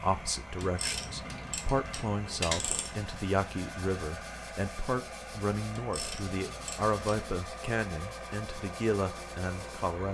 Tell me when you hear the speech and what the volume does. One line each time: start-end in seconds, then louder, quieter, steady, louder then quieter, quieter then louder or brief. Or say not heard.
0.0-10.0 steady.